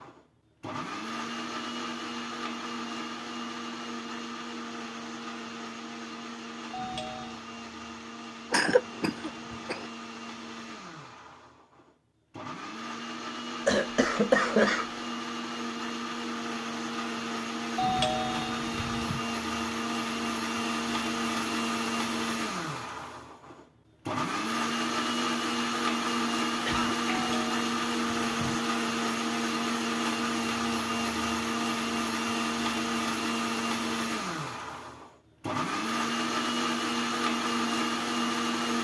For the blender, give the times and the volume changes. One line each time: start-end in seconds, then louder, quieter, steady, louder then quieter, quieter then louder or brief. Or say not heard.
0.0-38.7 louder.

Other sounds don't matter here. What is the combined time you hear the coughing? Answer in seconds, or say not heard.
3 s.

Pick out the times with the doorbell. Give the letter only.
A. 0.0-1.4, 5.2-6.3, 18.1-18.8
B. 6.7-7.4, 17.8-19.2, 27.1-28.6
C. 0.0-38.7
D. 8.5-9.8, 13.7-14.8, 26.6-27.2
B.